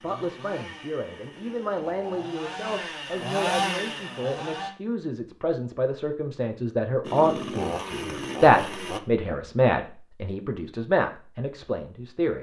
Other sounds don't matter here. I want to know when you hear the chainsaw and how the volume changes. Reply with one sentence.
You can hear the chainsaw from 0.0 to 4.7 s, getting louder; and briefly from 7.0 to 9.0 s.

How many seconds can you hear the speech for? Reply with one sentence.
The speech can be heard for 12 seconds in total.